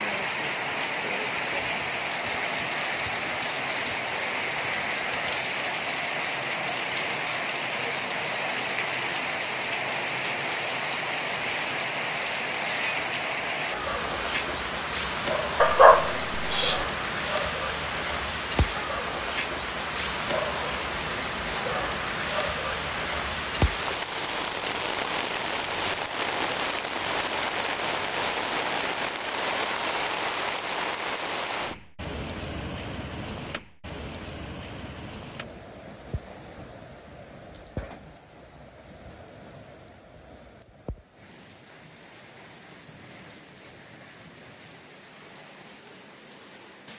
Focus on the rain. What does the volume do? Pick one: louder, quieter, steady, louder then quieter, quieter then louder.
quieter.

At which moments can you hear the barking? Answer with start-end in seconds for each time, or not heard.
15.6-16.9.